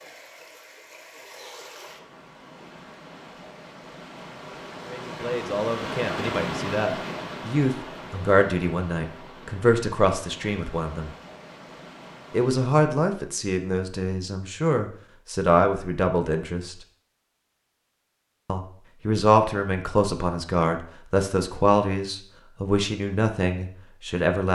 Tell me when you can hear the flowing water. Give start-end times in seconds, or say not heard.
0.0-12.7.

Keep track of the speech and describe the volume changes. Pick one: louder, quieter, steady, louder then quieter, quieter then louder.
steady.